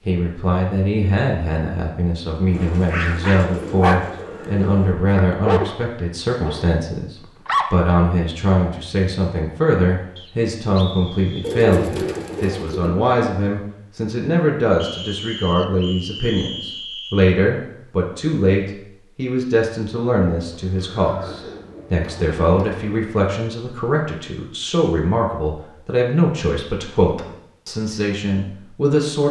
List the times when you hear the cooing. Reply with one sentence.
You can hear the cooing from 2.5 to 5.0 s, from 11.4 to 12.9 s and from 20.4 to 23.1 s.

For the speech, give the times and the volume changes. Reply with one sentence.
The speech can be heard from 0.1 to 29.2 s, at a steady volume.